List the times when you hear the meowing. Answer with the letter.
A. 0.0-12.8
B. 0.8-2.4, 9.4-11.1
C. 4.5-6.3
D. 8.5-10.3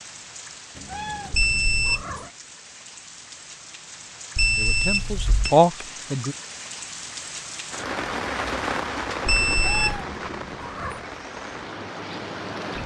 B.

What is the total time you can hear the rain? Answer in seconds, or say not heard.
13 s.